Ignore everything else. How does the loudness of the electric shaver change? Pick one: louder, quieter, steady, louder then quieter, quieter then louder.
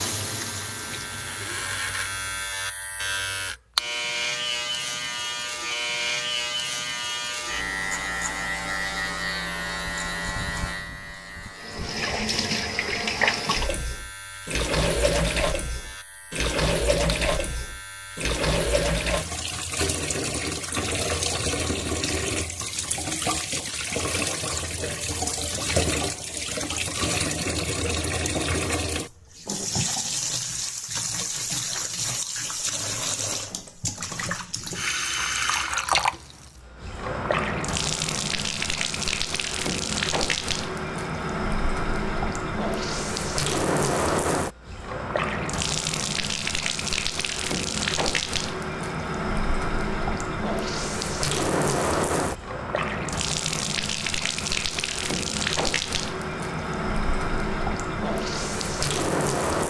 quieter.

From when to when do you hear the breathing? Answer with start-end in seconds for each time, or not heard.
not heard.